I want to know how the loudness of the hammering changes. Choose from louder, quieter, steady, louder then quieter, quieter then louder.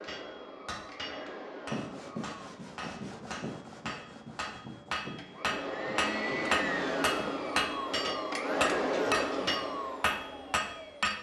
louder.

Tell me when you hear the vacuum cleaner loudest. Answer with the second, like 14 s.
9 s.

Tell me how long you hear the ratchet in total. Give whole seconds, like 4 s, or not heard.
not heard.